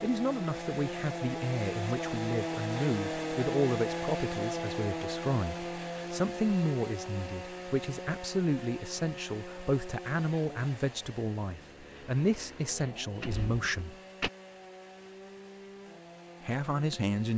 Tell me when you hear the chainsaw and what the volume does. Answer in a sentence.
The chainsaw can be heard from 0.0 to 17.3 s, getting quieter.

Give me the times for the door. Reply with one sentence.
The door can be heard from 12.8 to 14.3 s.